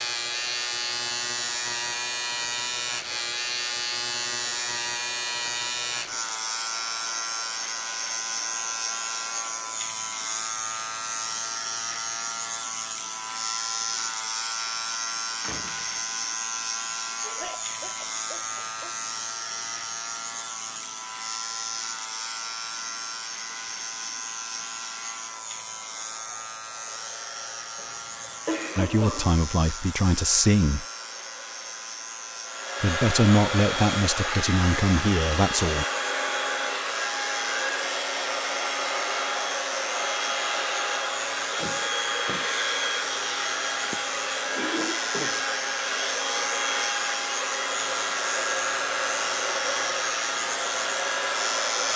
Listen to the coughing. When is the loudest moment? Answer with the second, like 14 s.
29 s.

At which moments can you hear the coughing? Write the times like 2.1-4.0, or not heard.
17.2-18.9, 27.8-29.4.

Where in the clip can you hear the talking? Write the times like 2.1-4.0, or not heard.
28.8-30.9, 32.8-35.9.